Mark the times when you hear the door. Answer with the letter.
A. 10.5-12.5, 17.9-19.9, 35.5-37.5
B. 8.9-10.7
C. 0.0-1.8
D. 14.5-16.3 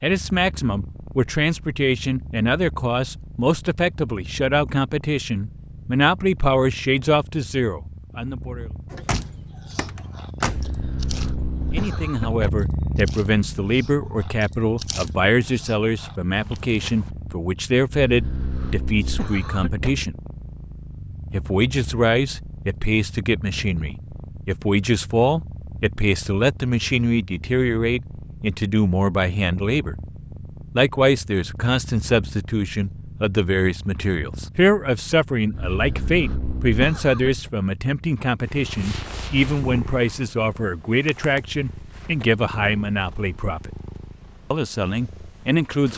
B.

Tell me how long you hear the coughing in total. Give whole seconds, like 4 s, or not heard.
6 s.